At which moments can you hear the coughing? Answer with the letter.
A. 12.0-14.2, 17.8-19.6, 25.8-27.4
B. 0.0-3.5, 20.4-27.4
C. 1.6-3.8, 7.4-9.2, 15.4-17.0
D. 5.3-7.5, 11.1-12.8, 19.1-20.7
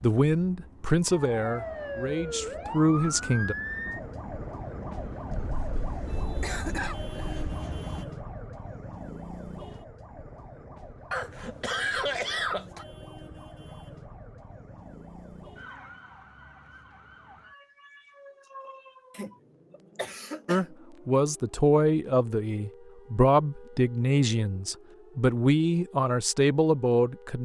D.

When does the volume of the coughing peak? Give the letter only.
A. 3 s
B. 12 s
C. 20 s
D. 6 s
B.